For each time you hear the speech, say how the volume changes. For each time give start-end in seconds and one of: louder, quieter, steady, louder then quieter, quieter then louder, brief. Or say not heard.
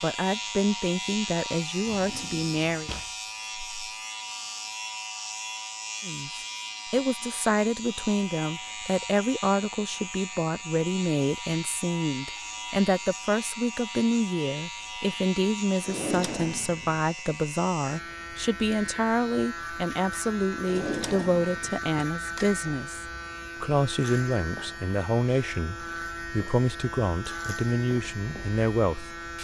0.0-2.9 brief
6.0-29.4 steady.